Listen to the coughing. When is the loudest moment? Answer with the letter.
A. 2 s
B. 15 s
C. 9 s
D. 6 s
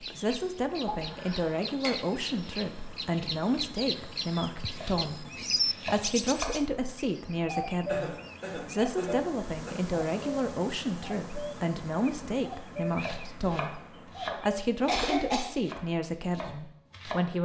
B.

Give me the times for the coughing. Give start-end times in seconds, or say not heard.
0.8-1.9, 7.8-9.8, 14.8-15.6.